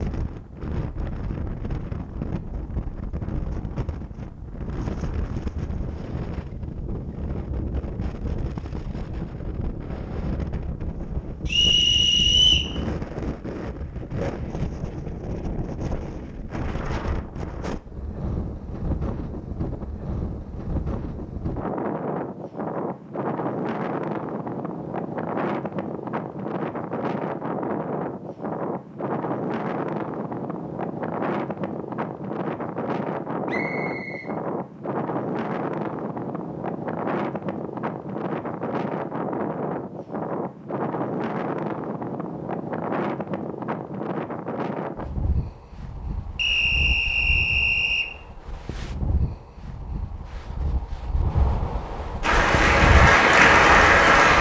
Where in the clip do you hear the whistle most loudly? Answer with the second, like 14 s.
12 s.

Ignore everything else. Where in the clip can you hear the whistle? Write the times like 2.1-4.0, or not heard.
11.4-12.7, 33.5-34.3, 46.4-48.1.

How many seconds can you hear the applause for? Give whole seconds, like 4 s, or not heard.
2 s.